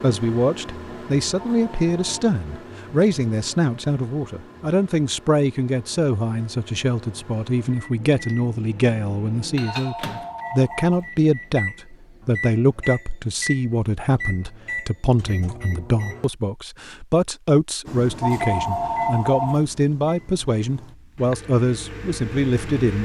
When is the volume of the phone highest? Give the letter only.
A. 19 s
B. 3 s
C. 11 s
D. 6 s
A.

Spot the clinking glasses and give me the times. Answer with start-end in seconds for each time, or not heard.
not heard.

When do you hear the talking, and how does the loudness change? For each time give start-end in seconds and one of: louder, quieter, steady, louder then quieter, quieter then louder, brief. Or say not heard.
0.0-22.9 steady.